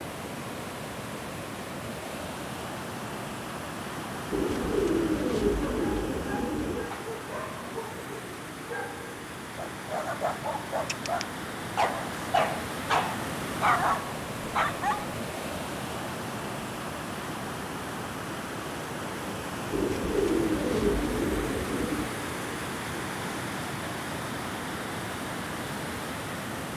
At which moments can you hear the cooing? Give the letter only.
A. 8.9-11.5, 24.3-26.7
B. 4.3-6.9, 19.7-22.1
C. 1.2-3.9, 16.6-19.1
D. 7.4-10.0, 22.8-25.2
B.